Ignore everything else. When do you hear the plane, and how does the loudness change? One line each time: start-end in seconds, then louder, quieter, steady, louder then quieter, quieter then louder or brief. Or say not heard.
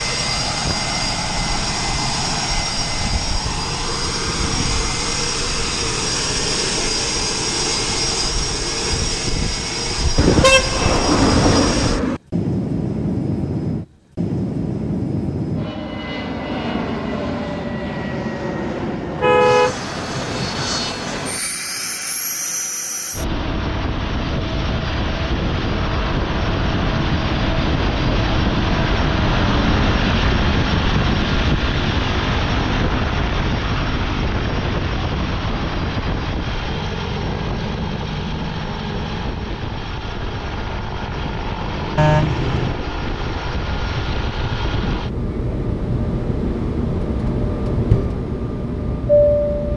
0.0-49.7 steady.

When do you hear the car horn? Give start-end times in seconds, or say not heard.
10.2-12.2, 19.1-20.8, 42.0-42.8.